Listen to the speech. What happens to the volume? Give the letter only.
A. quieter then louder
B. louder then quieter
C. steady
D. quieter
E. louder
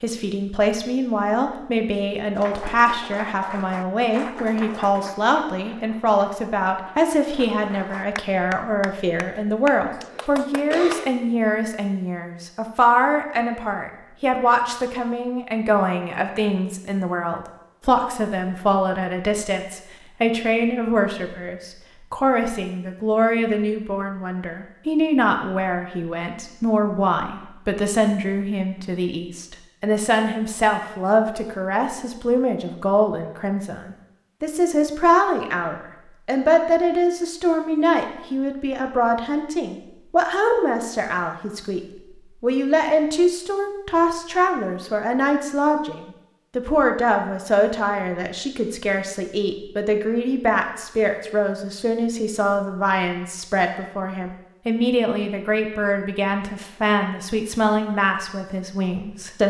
C.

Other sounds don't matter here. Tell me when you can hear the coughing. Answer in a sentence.
The coughing can be heard from 9.9 to 11.1 s.